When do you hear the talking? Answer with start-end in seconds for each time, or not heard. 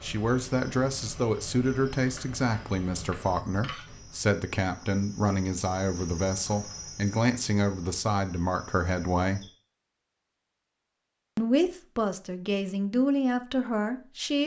0.0-9.4, 11.3-14.4.